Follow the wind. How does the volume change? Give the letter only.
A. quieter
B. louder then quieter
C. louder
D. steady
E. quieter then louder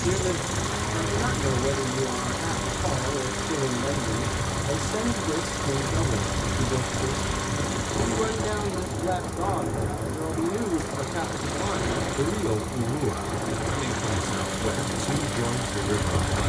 D.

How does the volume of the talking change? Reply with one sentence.
The volume of the talking stays about the same.